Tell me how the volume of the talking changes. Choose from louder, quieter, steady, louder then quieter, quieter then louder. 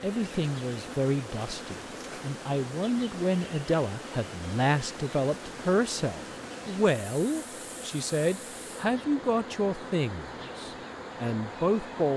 steady.